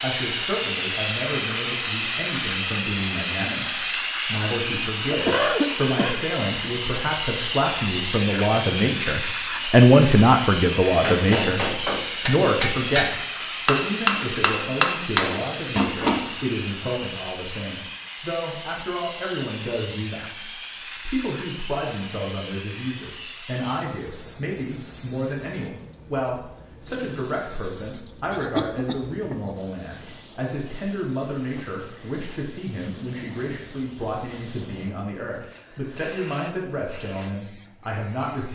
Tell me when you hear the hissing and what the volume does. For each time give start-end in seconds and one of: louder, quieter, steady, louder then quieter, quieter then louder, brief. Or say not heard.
0.0-38.5 quieter.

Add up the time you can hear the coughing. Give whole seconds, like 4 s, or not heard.
2 s.